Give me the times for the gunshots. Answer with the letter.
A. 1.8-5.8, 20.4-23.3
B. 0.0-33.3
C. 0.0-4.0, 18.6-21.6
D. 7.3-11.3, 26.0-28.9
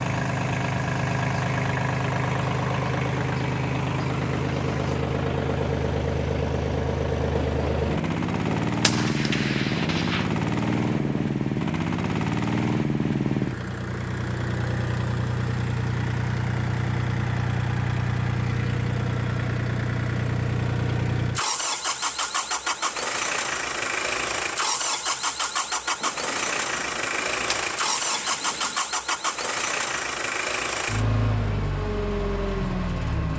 D.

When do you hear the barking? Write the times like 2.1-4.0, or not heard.
not heard.